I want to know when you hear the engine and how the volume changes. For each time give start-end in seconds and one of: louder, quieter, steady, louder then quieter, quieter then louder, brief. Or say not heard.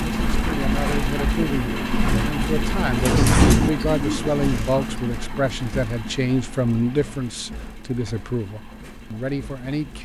0.0-10.0 quieter.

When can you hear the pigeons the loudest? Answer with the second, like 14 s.
3 s.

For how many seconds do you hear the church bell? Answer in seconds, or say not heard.
not heard.